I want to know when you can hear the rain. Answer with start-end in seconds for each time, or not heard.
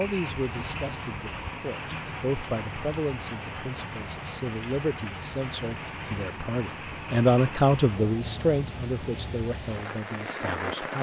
0.0-10.9.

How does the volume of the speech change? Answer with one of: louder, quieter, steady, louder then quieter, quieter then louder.
louder then quieter.